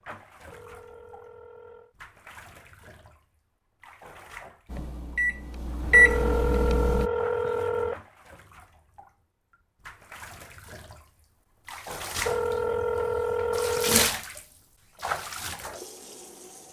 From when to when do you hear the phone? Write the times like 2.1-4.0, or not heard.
0.4-1.9, 5.8-8.0, 12.2-14.1.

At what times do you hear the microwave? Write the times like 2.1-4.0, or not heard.
4.7-7.1.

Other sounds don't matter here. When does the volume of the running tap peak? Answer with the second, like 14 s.
14 s.